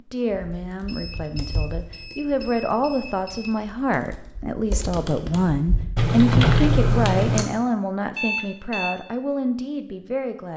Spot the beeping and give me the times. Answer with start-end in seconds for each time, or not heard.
0.8-3.6, 8.2-8.9.